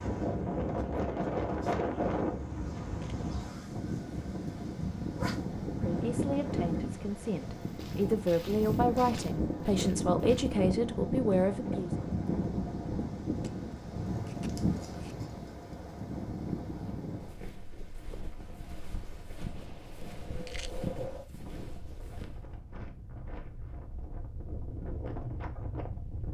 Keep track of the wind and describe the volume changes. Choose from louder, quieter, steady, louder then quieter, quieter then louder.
quieter.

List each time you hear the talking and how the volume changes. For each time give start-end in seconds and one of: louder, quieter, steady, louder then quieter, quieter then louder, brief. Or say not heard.
5.8-11.9 louder.